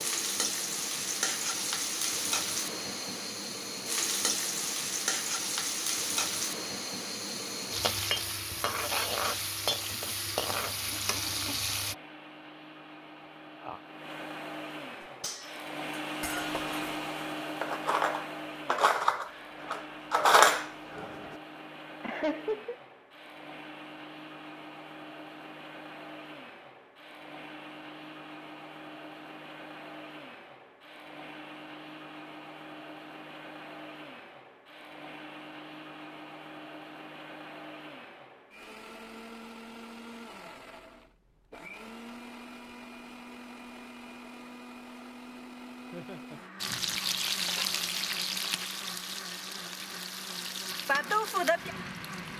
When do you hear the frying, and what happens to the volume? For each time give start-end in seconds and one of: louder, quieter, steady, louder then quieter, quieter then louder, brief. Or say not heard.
0.0-11.9 steady
46.6-52.3 quieter then louder.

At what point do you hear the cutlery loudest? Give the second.
20 s.